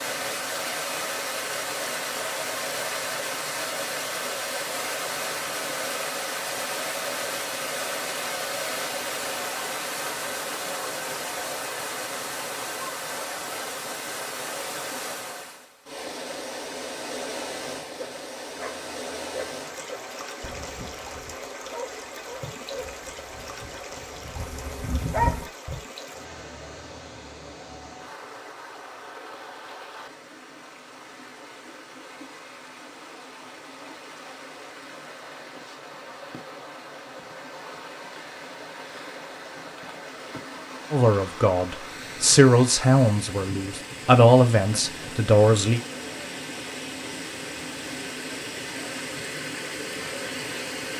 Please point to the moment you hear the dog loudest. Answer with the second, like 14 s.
25 s.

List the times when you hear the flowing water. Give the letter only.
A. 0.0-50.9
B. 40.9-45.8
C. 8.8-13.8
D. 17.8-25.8
A.